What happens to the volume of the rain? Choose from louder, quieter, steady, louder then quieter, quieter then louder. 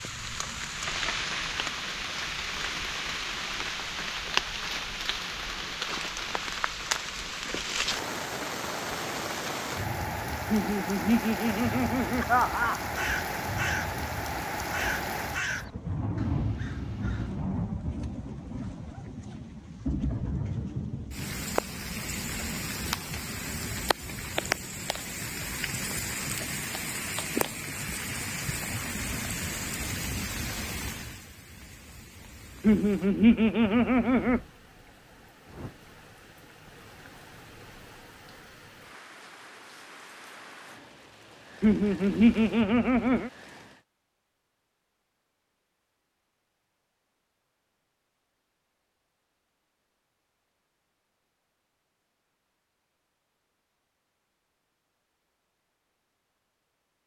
quieter.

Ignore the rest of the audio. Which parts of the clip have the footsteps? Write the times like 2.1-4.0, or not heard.
not heard.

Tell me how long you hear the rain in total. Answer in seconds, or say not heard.
44 s.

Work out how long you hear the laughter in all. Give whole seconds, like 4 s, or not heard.
6 s.